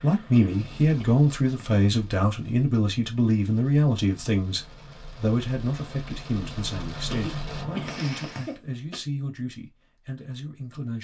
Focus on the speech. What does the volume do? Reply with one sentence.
The loudness of the speech goes down.